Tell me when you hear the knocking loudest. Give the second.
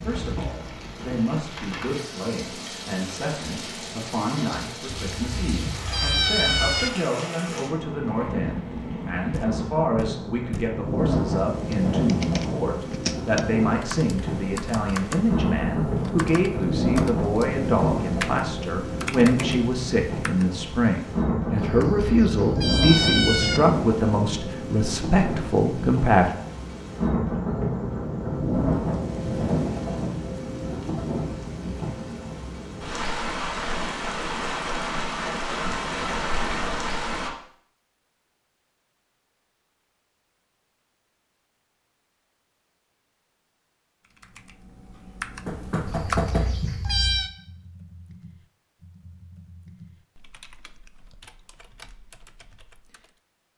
46 s.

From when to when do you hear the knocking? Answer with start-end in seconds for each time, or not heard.
9.3-10.8, 45.5-46.6.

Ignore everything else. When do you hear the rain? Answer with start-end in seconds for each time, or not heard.
0.0-37.3.